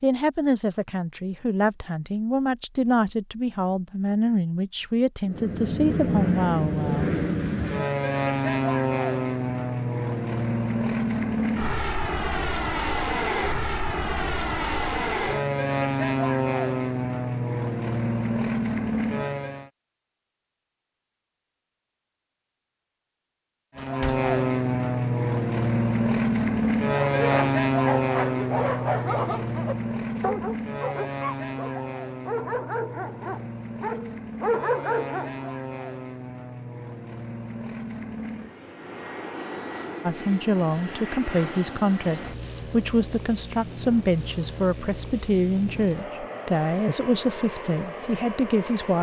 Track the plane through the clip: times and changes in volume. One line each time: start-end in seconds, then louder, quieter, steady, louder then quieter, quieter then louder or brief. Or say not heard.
5.2-19.7 steady
23.8-48.9 quieter.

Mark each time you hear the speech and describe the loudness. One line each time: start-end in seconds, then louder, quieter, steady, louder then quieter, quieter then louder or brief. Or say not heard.
0.0-7.2 steady
40.0-48.9 steady.